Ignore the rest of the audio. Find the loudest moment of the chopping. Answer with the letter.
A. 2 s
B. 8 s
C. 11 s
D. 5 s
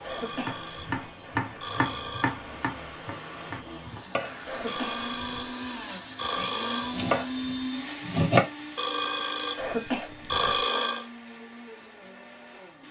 B.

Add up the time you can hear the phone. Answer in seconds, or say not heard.
7 s.